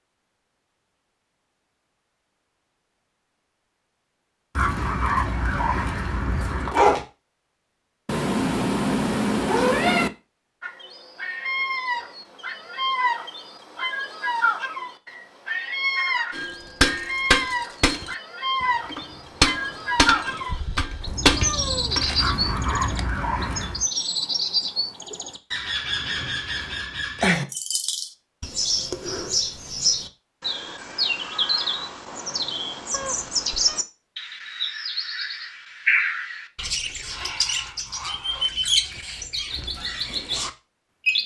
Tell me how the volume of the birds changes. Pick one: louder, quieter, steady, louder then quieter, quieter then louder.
steady.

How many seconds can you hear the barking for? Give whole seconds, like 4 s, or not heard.
4 s.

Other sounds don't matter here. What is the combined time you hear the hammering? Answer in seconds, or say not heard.
6 s.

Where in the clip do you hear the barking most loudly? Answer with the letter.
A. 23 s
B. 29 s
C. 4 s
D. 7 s
D.